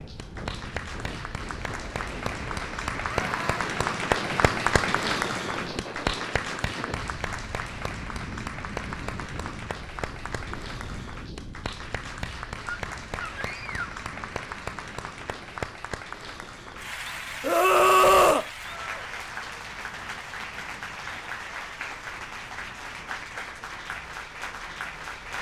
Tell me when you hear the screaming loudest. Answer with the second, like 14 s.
18 s.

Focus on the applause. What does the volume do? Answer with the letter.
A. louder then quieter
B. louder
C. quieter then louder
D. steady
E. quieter
E.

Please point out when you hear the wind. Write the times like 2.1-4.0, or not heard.
0.0-25.3.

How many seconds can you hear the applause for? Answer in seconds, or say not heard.
25 s.